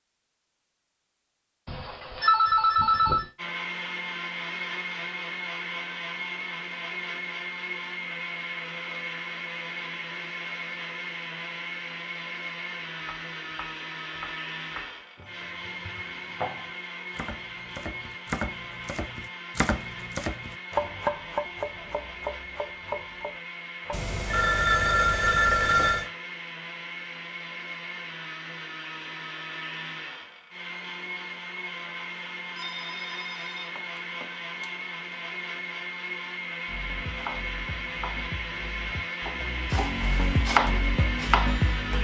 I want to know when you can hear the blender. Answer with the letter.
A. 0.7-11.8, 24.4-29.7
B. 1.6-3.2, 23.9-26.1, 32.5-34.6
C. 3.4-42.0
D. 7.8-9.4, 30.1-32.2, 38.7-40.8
C.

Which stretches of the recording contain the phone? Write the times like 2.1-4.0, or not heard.
1.6-3.2, 23.9-26.1, 32.5-34.6.